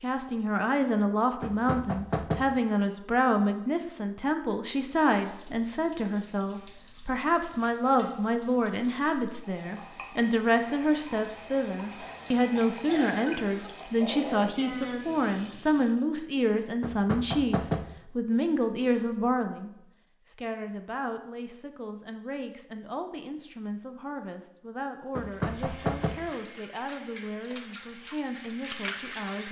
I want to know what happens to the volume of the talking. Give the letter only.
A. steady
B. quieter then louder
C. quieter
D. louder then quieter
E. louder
C.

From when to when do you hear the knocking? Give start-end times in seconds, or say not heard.
1.4-2.6, 16.8-18.0, 25.1-26.3.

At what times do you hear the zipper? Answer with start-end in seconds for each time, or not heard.
not heard.